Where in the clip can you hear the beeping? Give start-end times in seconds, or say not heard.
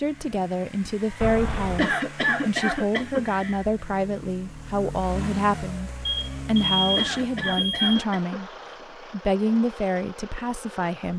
1.2-1.9, 6.0-8.1.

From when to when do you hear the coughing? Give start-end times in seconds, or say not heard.
1.8-3.6, 7.0-8.4.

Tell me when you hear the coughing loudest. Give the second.
2 s.